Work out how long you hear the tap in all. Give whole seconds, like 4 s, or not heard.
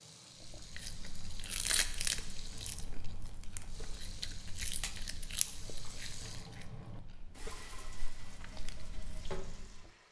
10 s.